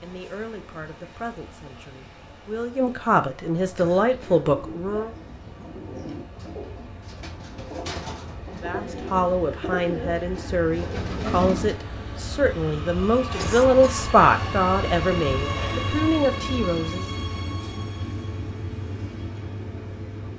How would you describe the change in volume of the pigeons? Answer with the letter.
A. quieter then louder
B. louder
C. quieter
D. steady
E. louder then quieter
B.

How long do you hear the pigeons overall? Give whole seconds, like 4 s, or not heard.
8 s.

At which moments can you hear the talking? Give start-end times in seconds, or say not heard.
0.0-5.1, 8.6-17.1.